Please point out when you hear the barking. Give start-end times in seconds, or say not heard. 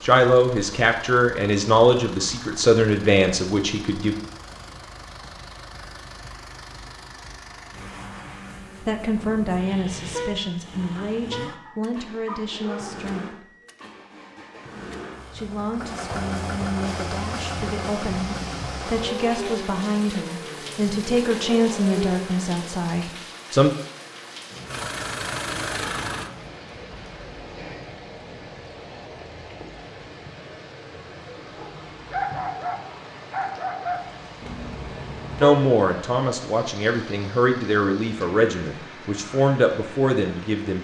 10.9-12.9, 31.6-34.2.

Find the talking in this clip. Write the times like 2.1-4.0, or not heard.
0.0-4.2, 8.8-13.5, 15.3-23.7, 35.4-40.7.